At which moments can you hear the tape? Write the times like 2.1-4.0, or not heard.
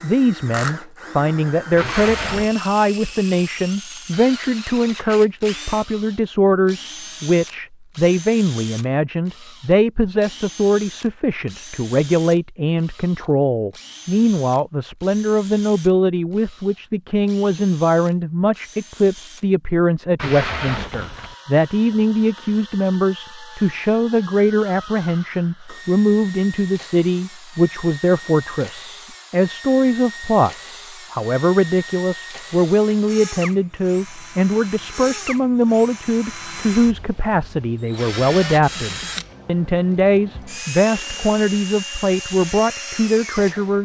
1.8-2.5, 20.1-21.4, 40.8-41.5.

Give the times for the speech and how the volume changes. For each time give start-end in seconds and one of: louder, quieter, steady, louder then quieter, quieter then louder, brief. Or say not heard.
0.0-43.8 steady.